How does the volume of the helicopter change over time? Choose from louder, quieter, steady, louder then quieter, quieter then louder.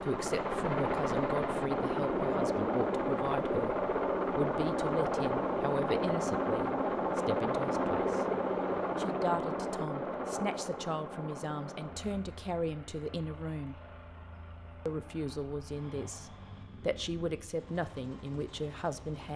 quieter.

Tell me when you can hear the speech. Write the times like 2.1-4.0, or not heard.
0.0-8.2, 8.9-13.8, 14.8-19.3.